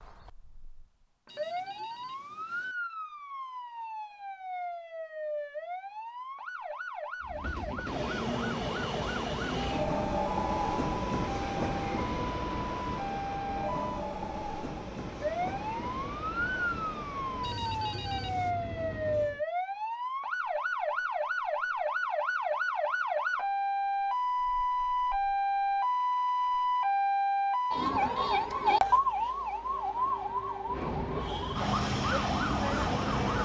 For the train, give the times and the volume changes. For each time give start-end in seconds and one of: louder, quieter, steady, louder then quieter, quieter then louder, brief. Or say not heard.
7.2-19.4 quieter
30.6-33.4 brief.